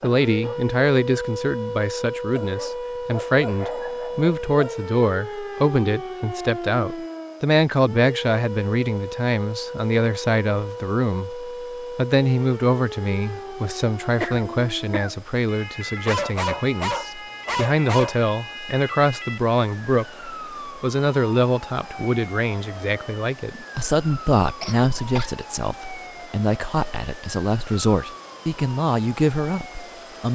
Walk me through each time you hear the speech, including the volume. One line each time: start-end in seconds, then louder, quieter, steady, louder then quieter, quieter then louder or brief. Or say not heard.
0.0-30.2 steady.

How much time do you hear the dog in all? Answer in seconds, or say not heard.
5 s.